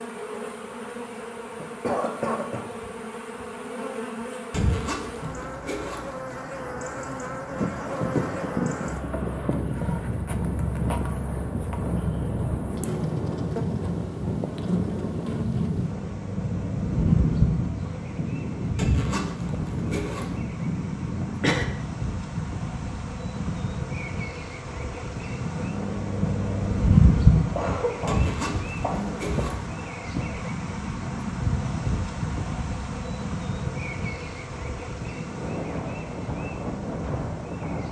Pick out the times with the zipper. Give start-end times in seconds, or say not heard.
4.5-6.0, 18.8-20.3, 28.1-29.6.